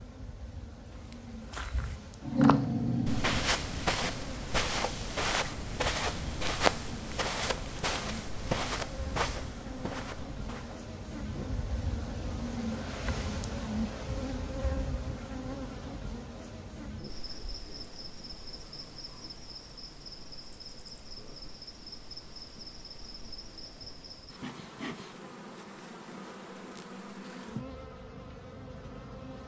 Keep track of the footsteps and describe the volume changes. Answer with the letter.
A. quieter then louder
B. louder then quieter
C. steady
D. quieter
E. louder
B.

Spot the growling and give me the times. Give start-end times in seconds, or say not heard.
2.2-3.5.